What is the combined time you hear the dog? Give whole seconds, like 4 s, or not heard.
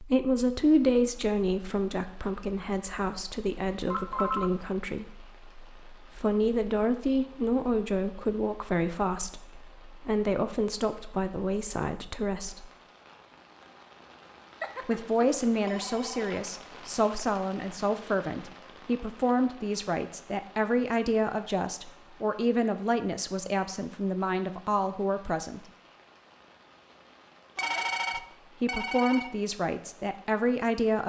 not heard.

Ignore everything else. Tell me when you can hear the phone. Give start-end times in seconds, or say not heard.
3.9-4.5, 14.6-16.4, 27.6-29.4.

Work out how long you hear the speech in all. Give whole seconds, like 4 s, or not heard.
26 s.